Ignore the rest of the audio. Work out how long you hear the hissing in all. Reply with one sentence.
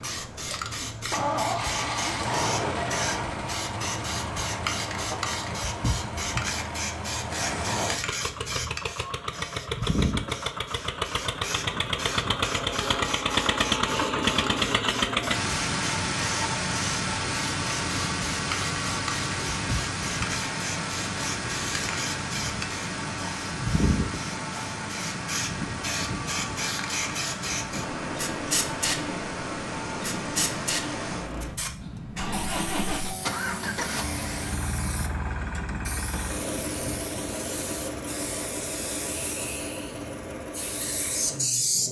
The hissing can be heard for 42 seconds in total.